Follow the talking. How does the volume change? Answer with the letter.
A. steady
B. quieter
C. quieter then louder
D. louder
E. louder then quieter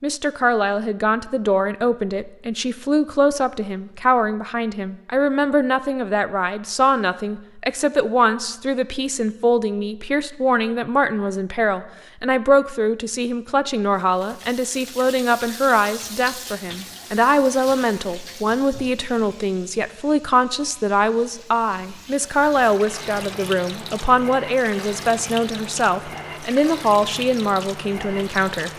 A.